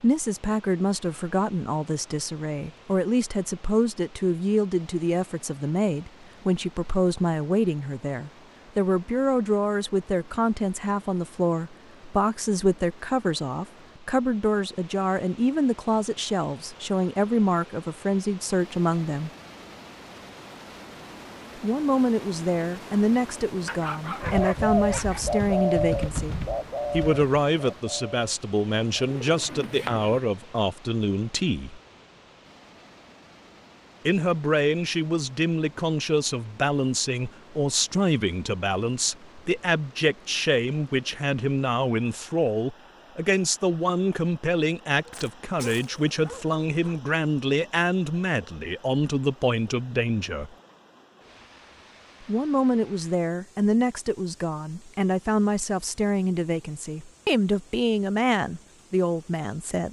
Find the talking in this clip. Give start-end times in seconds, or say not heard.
0.0-19.3, 21.6-31.8, 34.0-50.5, 52.2-59.8.